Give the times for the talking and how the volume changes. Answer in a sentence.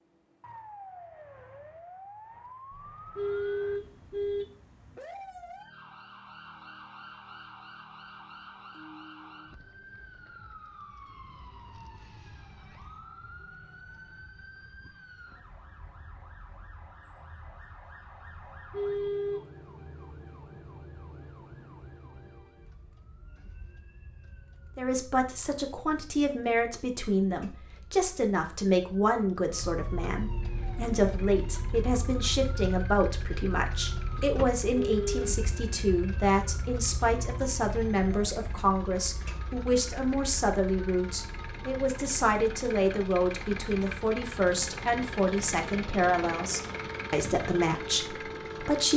You can hear the talking from 24.8 to 48.9 s, at a steady volume.